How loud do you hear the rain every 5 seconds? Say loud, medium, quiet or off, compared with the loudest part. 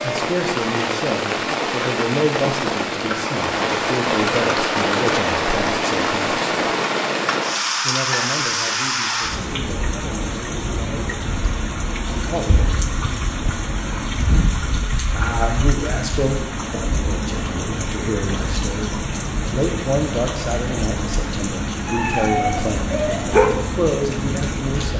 loud, loud, medium, medium, medium.